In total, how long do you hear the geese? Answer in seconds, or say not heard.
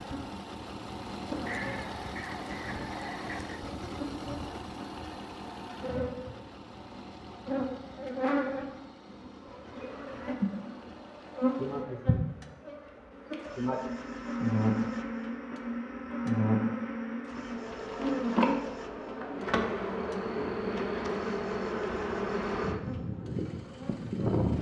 2 s.